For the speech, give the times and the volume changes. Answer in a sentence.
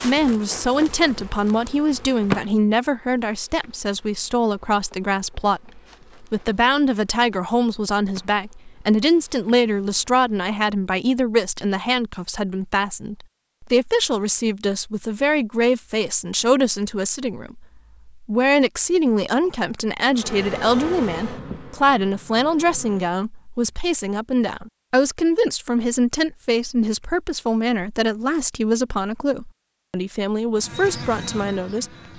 The speech can be heard from 0.0 to 31.9 s, at a steady volume.